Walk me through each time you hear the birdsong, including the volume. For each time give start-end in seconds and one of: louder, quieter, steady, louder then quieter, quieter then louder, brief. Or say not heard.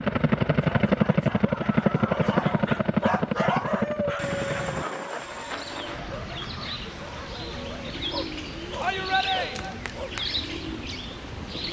5.2-11.6 louder.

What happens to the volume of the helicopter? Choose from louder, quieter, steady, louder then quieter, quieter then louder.
quieter.